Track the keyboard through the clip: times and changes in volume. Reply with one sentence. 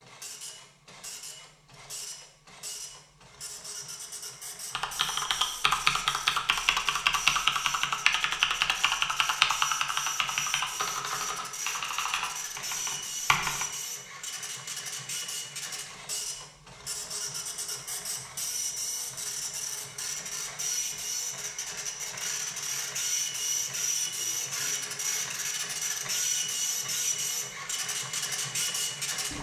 You can hear the keyboard from 4.8 to 13.7 s, getting quieter.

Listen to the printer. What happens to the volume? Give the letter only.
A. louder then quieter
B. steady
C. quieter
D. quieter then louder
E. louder
E.